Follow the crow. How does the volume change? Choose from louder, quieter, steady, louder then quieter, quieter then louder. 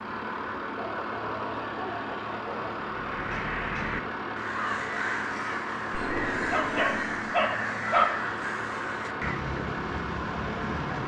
steady.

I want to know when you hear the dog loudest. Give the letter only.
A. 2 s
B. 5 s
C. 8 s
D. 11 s
C.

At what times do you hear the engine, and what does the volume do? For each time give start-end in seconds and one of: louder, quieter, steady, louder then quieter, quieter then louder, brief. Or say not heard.
0.0-11.0 steady.